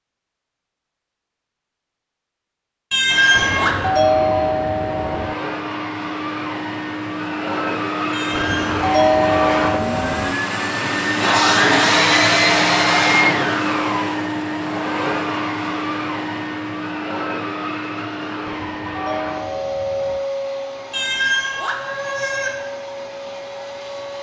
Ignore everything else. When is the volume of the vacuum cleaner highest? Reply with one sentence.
The loudest moment of the vacuum cleaner is at 12 seconds.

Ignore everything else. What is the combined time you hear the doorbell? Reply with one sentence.
The doorbell can be heard for 6 seconds in total.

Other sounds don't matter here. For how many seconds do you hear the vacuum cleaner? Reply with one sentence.
The vacuum cleaner can be heard for 21 seconds in total.